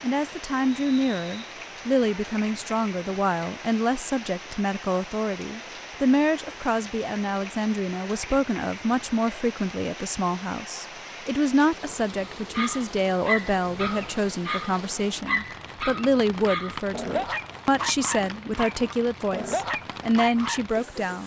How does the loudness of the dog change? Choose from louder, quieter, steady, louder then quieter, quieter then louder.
steady.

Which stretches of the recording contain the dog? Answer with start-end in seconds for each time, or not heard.
12.5-20.6.